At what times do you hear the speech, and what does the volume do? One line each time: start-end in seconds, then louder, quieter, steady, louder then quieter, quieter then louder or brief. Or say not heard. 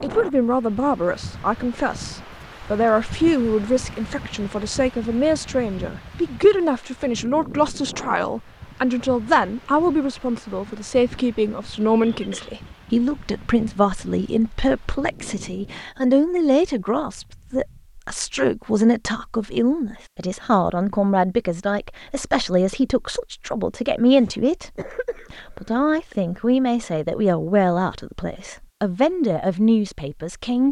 0.0-30.6 steady.